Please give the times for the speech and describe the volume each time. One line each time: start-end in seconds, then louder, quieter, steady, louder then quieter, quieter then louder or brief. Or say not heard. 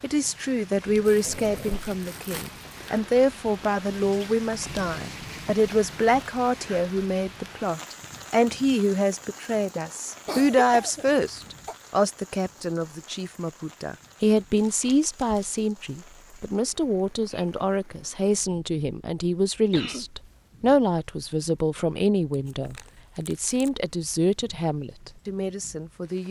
0.0-26.2 steady.